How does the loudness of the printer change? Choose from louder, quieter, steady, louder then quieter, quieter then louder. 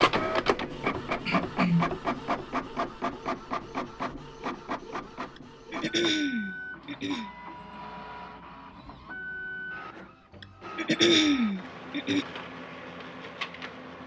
quieter.